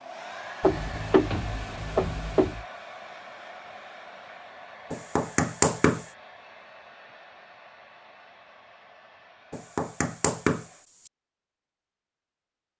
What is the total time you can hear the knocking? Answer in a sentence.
The knocking can be heard for 4 seconds in total.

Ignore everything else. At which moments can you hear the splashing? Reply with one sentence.
The splashing can't be heard in this clip.